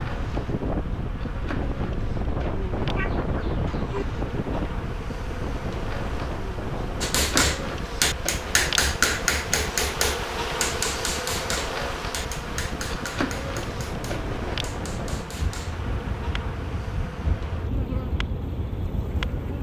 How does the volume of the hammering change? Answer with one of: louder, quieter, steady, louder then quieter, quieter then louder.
quieter.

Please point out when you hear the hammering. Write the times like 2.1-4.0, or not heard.
7.0-15.8.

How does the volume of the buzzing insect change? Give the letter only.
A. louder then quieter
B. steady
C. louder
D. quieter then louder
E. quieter
A.